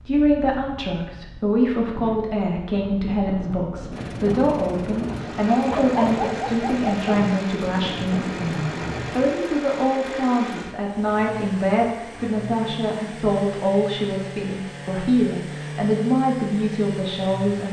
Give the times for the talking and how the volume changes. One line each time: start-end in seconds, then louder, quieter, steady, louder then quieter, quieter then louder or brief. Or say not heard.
0.1-17.6 steady.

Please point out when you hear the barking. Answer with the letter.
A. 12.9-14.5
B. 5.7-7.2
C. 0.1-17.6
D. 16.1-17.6
B.